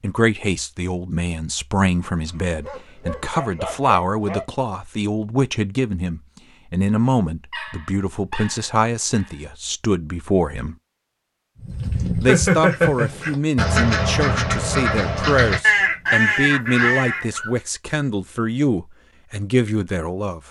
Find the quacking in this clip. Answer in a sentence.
The quacking can be heard from 11.6 to 17.3 s.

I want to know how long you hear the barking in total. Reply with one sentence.
The barking can be heard for 6 seconds in total.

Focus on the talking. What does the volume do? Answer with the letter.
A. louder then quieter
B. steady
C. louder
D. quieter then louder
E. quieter
B.